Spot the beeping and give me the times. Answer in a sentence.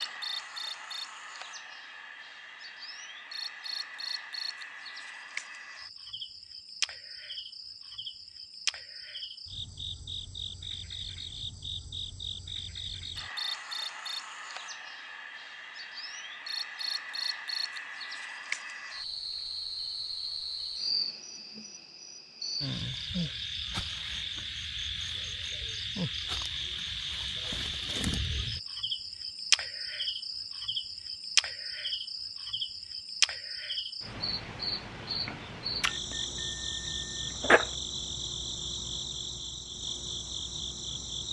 The beeping can be heard from 35.9 to 37.7 s.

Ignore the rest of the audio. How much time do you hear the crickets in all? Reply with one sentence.
You can hear the crickets for 41 seconds altogether.